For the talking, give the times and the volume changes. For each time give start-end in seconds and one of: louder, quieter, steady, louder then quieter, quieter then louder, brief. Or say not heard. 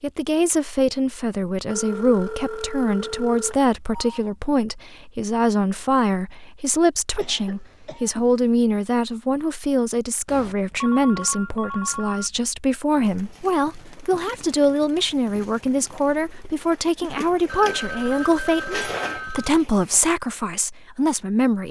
0.0-21.6 steady.